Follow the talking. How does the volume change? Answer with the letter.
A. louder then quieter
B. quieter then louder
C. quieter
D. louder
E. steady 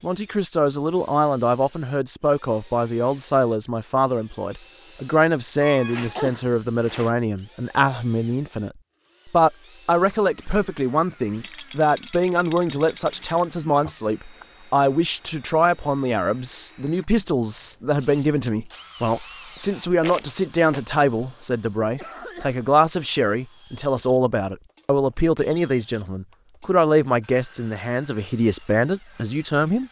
E.